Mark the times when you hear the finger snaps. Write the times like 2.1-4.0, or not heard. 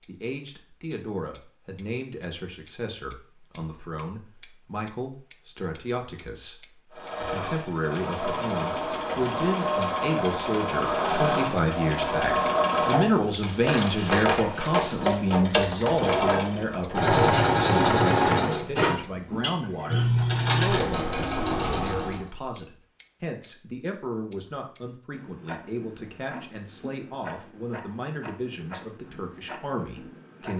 not heard.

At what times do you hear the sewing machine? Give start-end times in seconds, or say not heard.
6.9-22.2.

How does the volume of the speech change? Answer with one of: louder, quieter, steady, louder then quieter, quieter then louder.
louder then quieter.